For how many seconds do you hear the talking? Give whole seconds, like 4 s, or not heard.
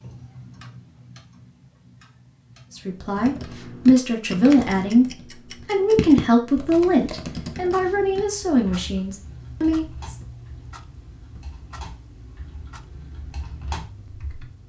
7 s.